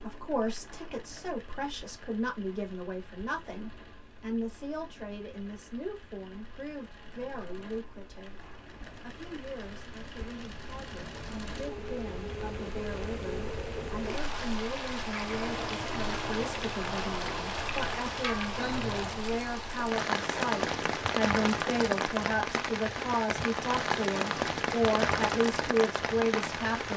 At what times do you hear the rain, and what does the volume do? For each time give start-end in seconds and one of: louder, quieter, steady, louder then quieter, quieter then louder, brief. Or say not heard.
0.0-26.9 louder.